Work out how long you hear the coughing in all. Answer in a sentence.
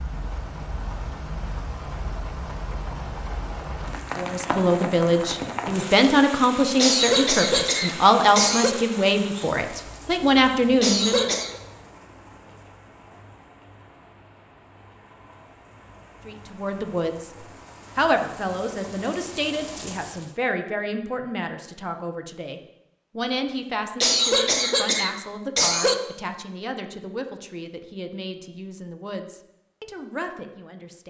The coughing can be heard for 5 seconds in total.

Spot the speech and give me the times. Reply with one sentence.
You can hear the speech from 4.2 to 11.3 s and from 16.2 to 31.0 s.